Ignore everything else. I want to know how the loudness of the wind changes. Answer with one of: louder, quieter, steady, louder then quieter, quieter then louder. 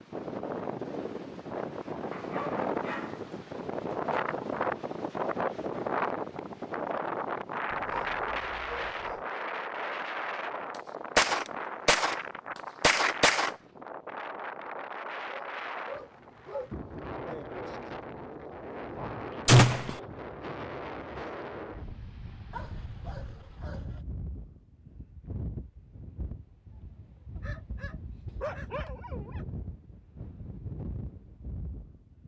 quieter.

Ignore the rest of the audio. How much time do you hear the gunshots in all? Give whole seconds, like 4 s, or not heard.
2 s.